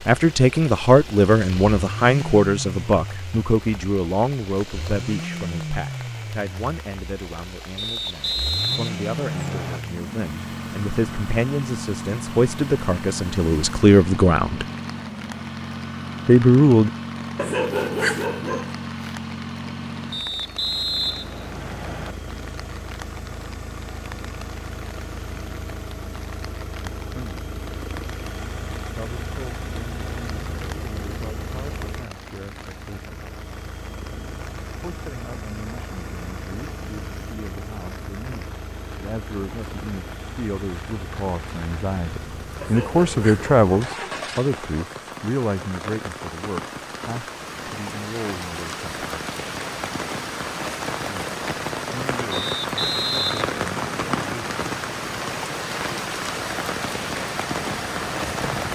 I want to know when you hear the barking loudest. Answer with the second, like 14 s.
18 s.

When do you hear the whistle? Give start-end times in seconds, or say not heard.
7.8-9.8, 20.1-22.1, 52.3-54.3.